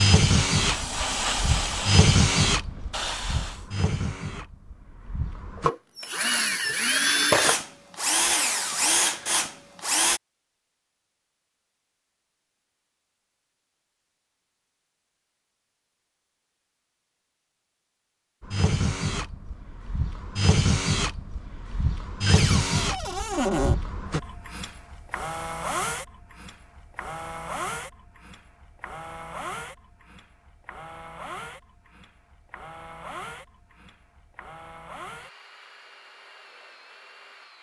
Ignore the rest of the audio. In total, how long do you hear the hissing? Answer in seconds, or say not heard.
4 s.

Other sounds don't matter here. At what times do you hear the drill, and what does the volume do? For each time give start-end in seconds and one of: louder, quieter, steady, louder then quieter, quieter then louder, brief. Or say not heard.
0.0-10.2 quieter then louder
18.4-37.5 quieter.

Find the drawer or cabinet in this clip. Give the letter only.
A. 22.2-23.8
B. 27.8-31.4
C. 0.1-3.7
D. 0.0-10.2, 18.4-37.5
A.